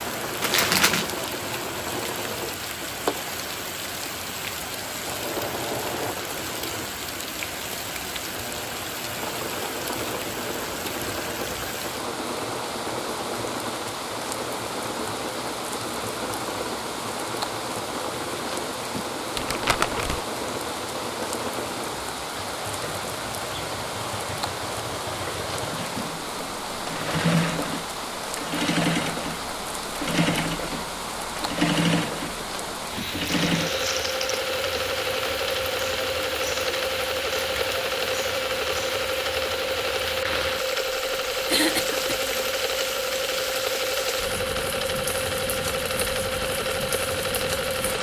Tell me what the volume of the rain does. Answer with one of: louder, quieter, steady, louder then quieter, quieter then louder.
steady.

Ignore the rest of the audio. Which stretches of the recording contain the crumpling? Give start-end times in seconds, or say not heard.
0.4-1.1, 19.4-20.2, 33.2-34.2.